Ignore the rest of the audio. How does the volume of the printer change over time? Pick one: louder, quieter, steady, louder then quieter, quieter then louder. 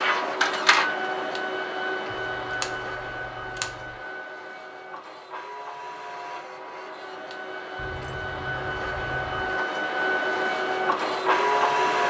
quieter then louder.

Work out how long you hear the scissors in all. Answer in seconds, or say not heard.
2 s.